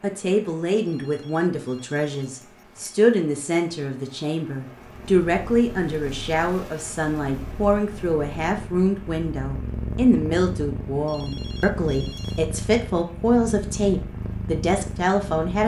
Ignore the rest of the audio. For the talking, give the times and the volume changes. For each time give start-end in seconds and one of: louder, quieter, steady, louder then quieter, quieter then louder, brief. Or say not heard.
0.0-15.6 steady.